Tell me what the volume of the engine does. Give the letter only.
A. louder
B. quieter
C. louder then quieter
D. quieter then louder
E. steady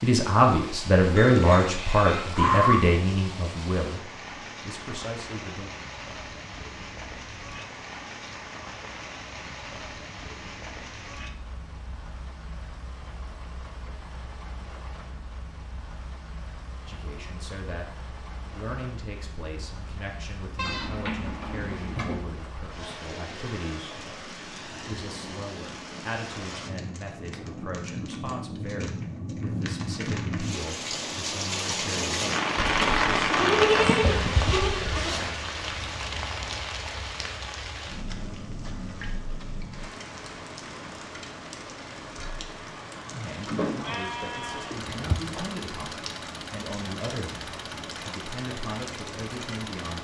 E.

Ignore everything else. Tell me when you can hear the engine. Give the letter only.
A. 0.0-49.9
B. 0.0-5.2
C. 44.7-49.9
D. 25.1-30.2
C.